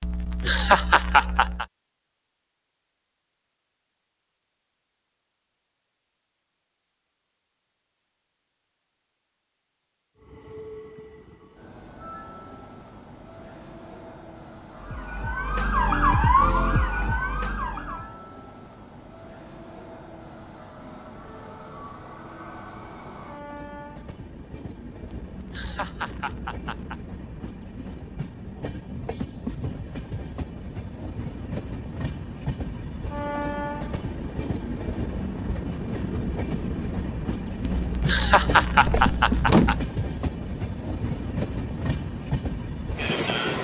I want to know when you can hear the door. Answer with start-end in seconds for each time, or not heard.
38.9-39.9.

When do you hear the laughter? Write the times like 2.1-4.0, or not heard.
0.0-1.6, 25.1-27.0, 37.6-39.9.